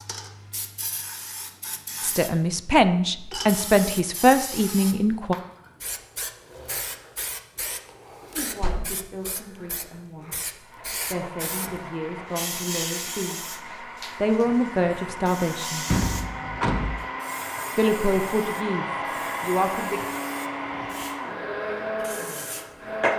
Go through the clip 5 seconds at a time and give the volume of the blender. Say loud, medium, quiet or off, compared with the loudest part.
off, off, medium, loud, loud.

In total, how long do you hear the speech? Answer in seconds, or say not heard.
13 s.